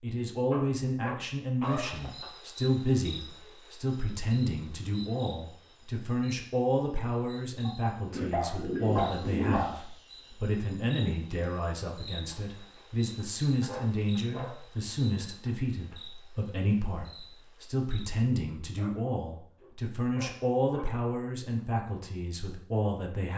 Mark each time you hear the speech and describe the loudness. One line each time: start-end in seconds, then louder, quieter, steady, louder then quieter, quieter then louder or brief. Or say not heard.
0.0-23.3 steady.